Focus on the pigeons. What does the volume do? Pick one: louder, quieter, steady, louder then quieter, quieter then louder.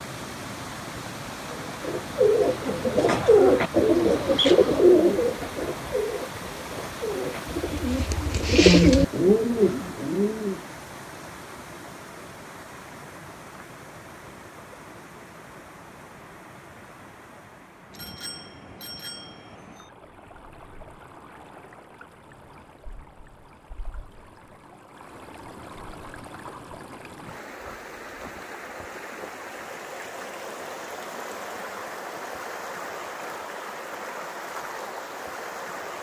quieter then louder.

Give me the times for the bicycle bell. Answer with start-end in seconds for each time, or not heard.
17.9-19.9.